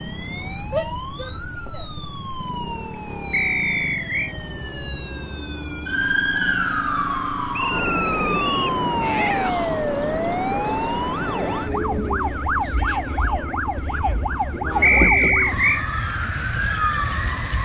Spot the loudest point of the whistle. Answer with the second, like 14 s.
15 s.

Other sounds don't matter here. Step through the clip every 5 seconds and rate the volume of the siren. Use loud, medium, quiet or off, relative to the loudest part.
medium, loud, loud, loud.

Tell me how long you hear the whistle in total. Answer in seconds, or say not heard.
3 s.